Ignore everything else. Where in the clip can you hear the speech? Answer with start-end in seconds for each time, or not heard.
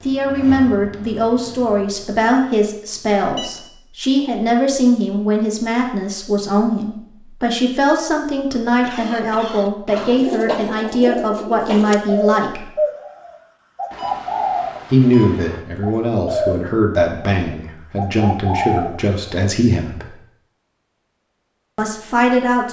0.0-12.7, 14.9-20.1, 21.8-22.6.